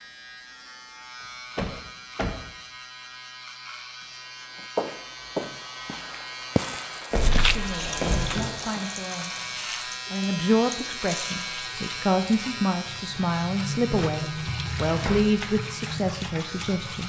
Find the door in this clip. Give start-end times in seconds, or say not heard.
1.6-2.4, 7.1-8.5, 14.8-15.3.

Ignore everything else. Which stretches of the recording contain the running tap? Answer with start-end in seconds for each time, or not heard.
7.6-17.0.